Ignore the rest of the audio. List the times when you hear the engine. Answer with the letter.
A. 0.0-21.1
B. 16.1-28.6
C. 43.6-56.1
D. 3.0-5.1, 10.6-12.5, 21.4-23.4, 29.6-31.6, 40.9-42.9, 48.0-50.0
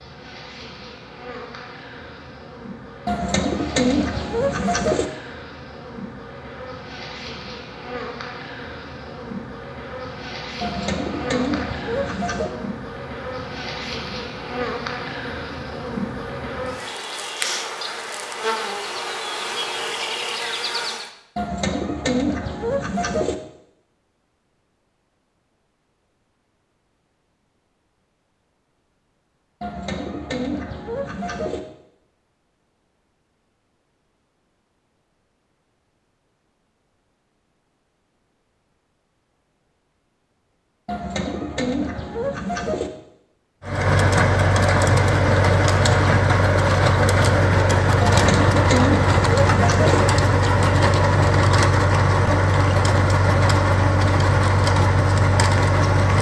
C.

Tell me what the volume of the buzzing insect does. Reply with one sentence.
The loudness of the buzzing insect goes up.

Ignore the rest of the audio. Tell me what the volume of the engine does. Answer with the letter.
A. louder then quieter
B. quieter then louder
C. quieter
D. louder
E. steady
E.